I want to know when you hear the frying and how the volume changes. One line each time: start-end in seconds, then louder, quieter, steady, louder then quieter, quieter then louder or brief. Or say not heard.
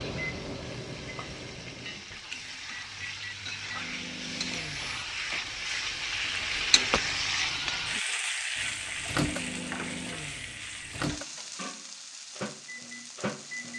0.0-13.7 louder then quieter.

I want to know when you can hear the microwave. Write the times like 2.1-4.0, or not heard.
0.0-5.0, 8.6-13.7.